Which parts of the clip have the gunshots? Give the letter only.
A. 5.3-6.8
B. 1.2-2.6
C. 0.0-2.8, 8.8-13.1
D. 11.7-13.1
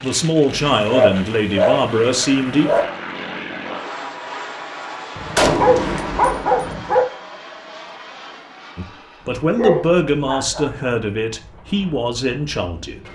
A.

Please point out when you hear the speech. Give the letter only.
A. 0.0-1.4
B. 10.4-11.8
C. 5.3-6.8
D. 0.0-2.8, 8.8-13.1
D.